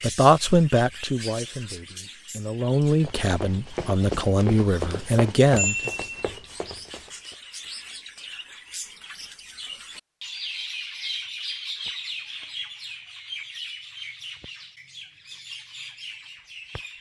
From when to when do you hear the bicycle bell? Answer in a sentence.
The bicycle bell can be heard from 5.0 to 6.3 s.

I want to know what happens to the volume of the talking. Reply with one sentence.
The loudness of the talking goes down, then up.